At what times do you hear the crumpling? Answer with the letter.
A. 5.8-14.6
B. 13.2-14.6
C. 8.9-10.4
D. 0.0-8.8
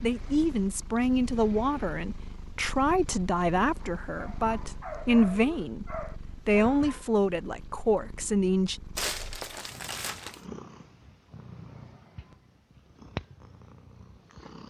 C.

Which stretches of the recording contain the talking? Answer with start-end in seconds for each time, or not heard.
0.0-8.8.